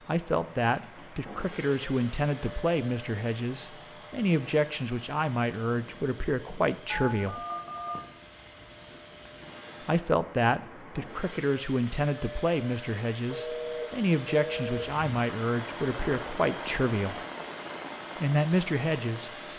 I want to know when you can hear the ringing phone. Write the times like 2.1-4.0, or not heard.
6.9-7.9, 13.3-14.8.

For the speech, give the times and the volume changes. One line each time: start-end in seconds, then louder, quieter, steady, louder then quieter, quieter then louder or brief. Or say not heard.
0.1-7.5 steady
9.8-17.2 steady
18.2-19.5 brief.